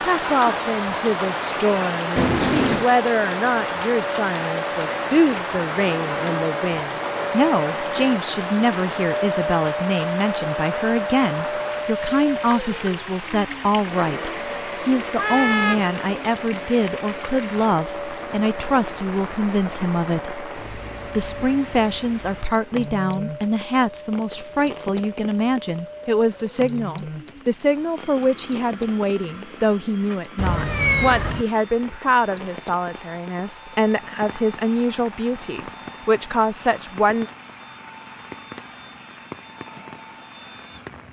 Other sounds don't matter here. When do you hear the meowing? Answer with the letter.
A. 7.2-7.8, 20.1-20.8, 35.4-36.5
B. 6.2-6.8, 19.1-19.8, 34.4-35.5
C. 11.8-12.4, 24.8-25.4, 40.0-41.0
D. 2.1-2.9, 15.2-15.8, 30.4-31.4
D.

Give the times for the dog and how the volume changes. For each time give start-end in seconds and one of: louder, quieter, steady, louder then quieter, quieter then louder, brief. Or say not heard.
not heard.